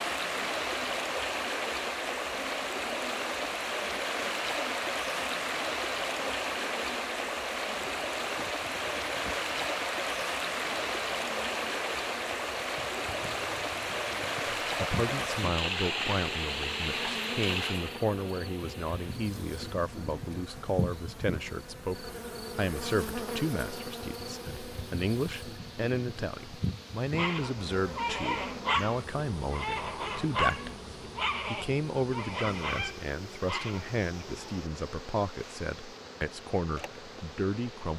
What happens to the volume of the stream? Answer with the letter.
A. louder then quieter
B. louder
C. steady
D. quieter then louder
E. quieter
E.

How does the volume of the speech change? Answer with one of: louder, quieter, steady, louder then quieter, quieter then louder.
steady.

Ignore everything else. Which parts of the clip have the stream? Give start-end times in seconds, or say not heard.
0.0-37.9.